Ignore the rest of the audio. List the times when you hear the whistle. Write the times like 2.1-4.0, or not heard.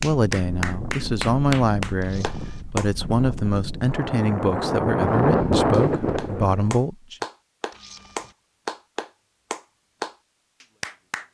not heard.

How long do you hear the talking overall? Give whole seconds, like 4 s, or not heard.
7 s.